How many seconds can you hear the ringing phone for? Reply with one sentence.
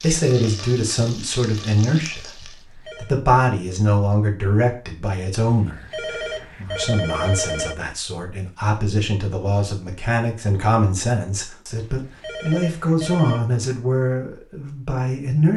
You can hear the ringing phone for 5 seconds altogether.